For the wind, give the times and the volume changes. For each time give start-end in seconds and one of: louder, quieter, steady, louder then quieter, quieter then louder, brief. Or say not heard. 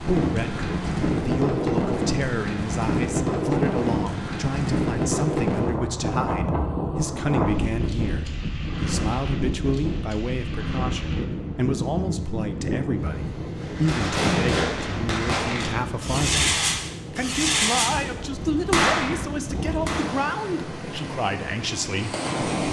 0.0-22.6 quieter.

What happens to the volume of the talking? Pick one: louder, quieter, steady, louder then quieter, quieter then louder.
steady.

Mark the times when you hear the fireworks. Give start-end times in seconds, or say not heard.
13.6-20.1.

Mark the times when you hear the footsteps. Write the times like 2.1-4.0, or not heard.
not heard.